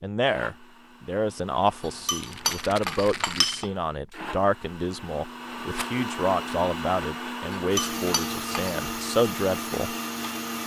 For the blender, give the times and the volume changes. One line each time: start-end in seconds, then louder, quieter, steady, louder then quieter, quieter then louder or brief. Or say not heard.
0.2-10.6 louder.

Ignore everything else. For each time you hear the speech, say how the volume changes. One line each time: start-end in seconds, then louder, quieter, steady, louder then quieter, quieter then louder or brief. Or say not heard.
0.0-9.9 steady.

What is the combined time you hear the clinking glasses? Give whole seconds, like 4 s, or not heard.
3 s.